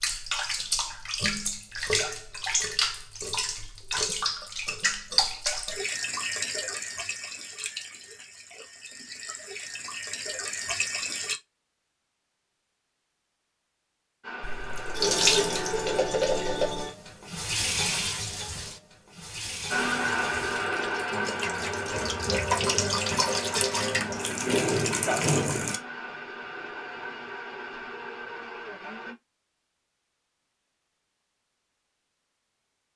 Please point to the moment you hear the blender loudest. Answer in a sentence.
The loudest moment of the blender is at 20 seconds.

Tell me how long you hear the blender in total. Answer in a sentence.
You can hear the blender for 11 seconds altogether.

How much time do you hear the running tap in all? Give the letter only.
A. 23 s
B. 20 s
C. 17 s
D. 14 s
A.